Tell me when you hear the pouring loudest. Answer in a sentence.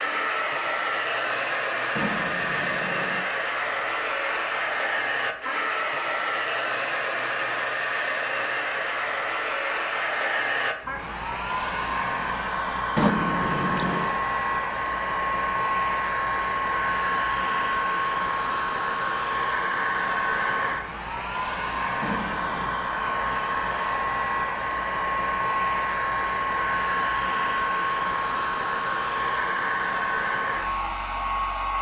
The loudest moment of the pouring is at 13 seconds.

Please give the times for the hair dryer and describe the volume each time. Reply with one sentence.
You can hear the hair dryer from 0.0 to 31.7 s, at a steady volume.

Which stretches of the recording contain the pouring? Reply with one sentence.
The pouring can be heard from 1.9 to 3.2 s, from 12.9 to 14.2 s and from 22.0 to 22.9 s.